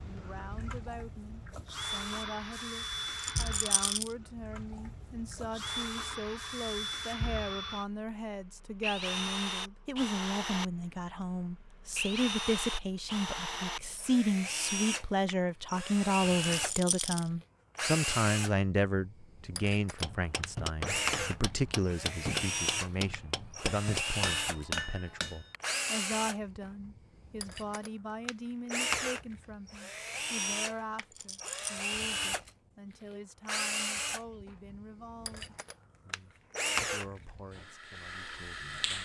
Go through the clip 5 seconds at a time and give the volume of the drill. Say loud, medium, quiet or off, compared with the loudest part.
medium, loud, loud, loud, loud, loud, loud, loud.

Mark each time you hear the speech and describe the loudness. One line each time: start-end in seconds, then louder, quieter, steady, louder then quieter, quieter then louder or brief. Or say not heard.
0.0-39.0 louder then quieter.